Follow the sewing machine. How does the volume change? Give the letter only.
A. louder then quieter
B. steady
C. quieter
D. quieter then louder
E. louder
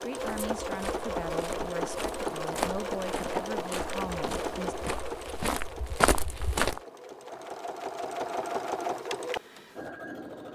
D.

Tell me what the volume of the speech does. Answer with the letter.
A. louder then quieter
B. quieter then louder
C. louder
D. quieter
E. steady
E.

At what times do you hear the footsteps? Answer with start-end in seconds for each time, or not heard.
0.1-6.8.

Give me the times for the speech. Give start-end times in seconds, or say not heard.
0.0-4.8.